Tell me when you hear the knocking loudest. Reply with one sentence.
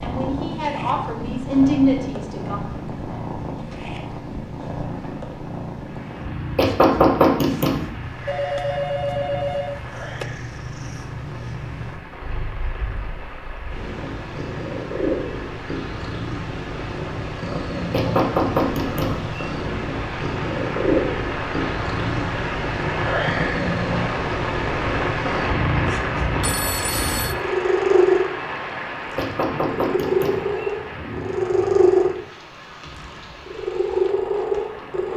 The loudest moment of the knocking is at 7 seconds.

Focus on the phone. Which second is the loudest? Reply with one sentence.
The volume of the phone peaks at 9 seconds.